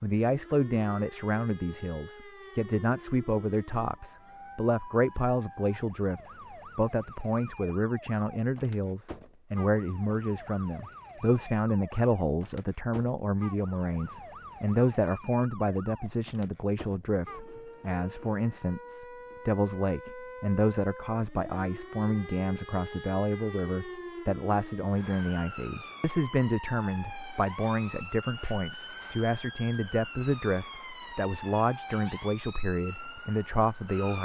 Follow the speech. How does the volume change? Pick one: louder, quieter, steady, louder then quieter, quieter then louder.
steady.